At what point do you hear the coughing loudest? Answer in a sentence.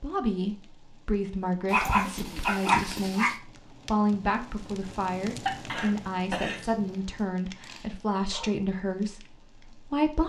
The volume of the coughing peaks at 6 seconds.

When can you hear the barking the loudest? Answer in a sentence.
The loudest moment of the barking is at 3 seconds.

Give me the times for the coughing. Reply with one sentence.
The coughing can be heard from 1.7 to 3.1 s and from 5.5 to 6.9 s.